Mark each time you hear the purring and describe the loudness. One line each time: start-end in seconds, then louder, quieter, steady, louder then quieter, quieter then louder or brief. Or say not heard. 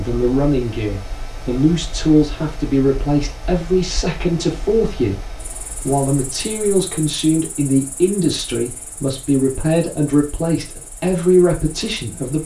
not heard.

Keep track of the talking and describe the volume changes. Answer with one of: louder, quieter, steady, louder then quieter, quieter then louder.
steady.